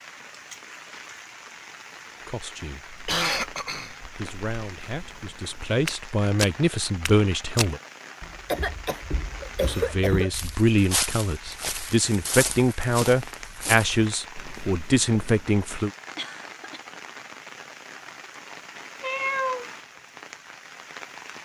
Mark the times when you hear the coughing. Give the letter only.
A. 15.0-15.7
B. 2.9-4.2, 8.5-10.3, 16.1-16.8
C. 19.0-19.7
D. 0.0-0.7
B.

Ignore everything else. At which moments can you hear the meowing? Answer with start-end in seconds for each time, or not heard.
19.0-19.7.